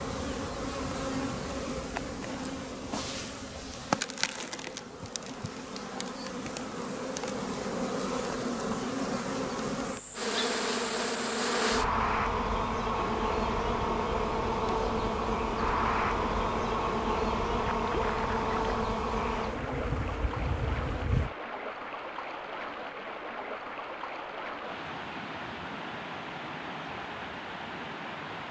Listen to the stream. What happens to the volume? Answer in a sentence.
The volume of the stream stays about the same.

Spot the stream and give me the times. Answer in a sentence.
The stream can be heard from 13.0 to 28.4 s.